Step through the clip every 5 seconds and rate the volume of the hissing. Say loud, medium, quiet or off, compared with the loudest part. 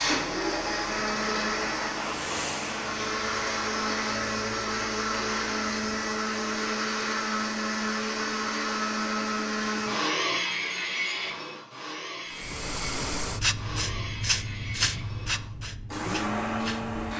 medium, off, loud, medium.